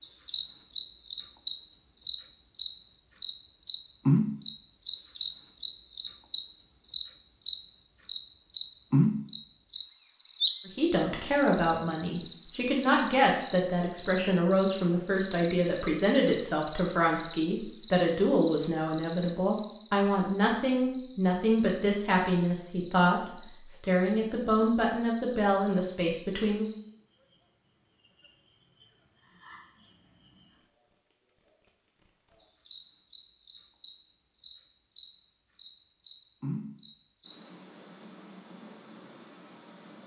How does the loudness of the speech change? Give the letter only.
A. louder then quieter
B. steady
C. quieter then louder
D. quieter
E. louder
B.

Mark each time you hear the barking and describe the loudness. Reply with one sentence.
You can't hear the barking here.